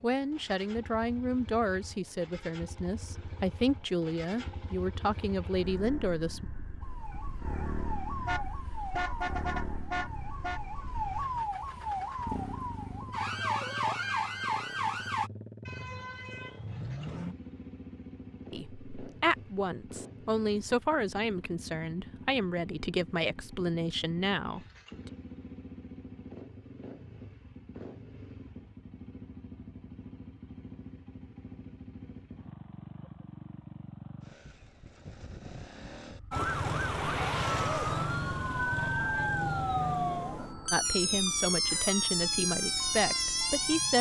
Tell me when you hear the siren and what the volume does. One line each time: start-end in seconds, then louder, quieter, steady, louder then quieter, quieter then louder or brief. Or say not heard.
6.8-15.3 louder
36.3-43.9 steady.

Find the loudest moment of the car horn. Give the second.
9 s.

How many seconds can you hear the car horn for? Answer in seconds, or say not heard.
5 s.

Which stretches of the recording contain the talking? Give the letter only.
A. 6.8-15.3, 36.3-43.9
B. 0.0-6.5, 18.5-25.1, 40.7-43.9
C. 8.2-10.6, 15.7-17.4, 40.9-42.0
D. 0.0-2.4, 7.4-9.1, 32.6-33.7
B.